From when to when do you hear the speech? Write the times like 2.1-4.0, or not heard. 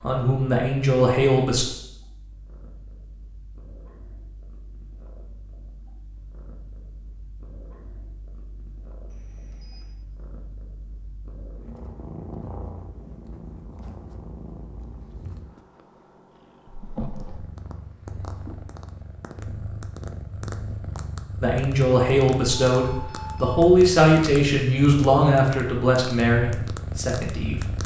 0.0-1.6, 21.4-27.8.